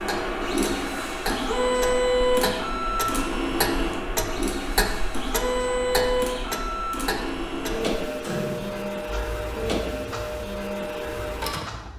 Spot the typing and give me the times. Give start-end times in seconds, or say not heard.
not heard.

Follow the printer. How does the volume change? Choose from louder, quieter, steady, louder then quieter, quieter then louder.
quieter.